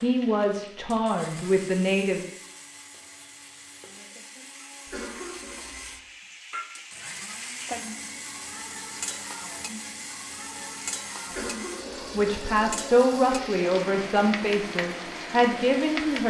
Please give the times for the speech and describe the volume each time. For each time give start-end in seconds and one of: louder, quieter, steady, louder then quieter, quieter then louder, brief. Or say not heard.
0.0-2.2 brief
12.2-16.2 quieter then louder.